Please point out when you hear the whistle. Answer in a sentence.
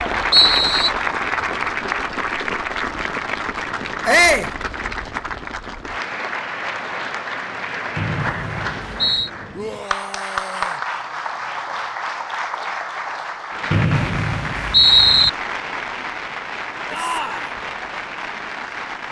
You can hear the whistle from 0.3 to 0.9 s, from 8.0 to 9.3 s and from 13.7 to 15.3 s.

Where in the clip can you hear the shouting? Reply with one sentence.
You can hear the shouting from 4.0 to 4.5 s, from 9.5 to 10.8 s and from 16.9 to 17.5 s.